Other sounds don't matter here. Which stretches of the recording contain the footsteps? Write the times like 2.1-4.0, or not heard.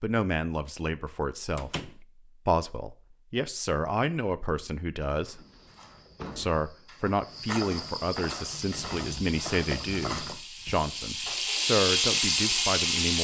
5.1-10.9.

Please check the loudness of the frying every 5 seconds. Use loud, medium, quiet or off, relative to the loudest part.
off, quiet, loud.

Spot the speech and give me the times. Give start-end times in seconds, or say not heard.
0.0-5.4, 6.3-13.1.